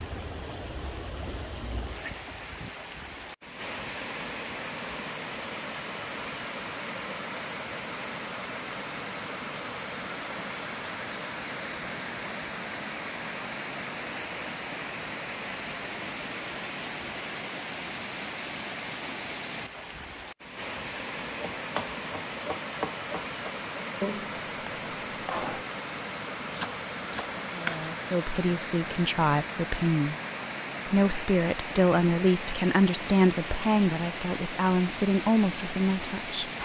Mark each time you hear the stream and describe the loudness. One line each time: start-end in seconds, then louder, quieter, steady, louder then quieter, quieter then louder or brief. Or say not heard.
0.0-36.5 steady.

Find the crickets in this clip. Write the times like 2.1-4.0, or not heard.
not heard.